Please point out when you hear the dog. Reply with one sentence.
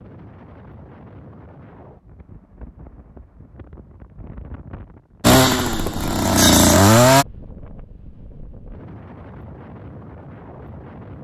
The dog can't be heard in this clip.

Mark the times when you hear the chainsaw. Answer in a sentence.
The chainsaw can be heard from 5.2 to 7.2 s.